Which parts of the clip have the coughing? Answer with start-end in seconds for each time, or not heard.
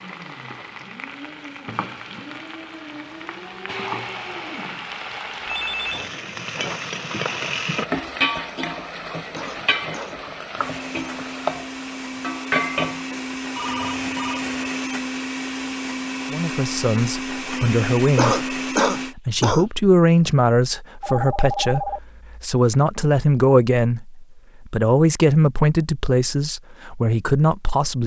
9.3-10.2, 18.1-19.6.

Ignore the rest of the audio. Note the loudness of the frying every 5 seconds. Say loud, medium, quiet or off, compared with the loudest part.
medium, loud, loud, off, off, off.